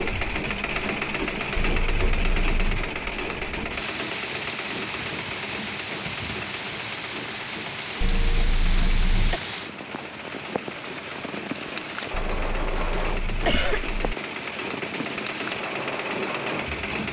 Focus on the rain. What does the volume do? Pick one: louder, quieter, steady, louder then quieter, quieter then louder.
louder.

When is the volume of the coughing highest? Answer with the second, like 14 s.
14 s.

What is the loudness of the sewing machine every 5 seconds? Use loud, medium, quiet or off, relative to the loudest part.
loud, medium, medium, loud.